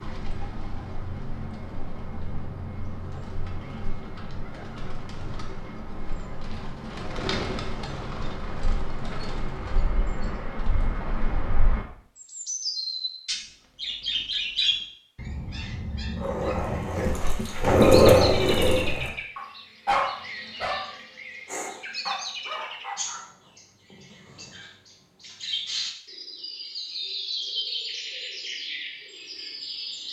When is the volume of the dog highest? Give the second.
18 s.